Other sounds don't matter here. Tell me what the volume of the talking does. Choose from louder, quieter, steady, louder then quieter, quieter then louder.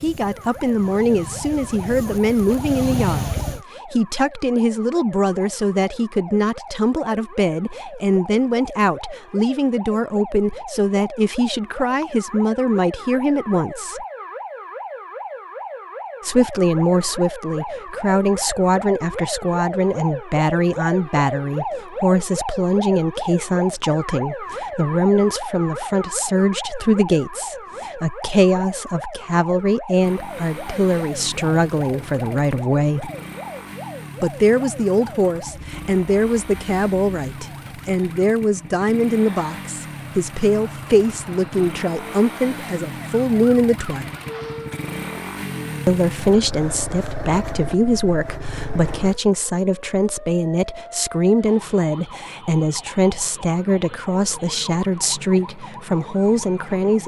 steady.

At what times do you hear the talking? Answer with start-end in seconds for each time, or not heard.
0.0-14.1, 16.2-33.1, 34.2-44.1, 45.9-57.0.